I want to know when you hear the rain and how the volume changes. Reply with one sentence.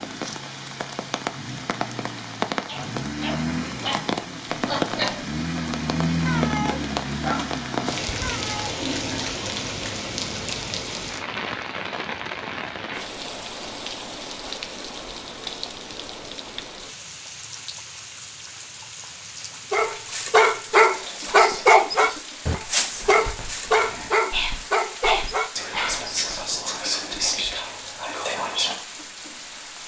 The rain can be heard from 0.0 to 29.8 s, getting quieter.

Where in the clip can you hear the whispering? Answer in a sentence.
You can hear the whispering from 20.7 to 28.8 s.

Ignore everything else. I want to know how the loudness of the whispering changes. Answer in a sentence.
The volume of the whispering goes up.